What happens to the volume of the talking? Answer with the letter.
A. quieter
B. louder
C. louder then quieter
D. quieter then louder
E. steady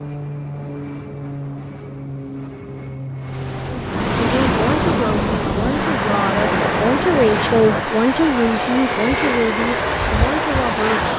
C.